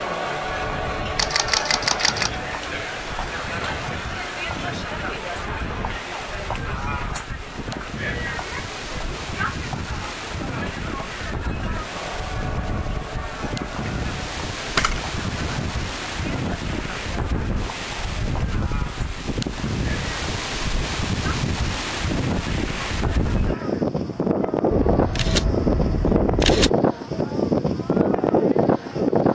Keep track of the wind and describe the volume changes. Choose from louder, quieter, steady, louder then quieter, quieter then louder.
louder.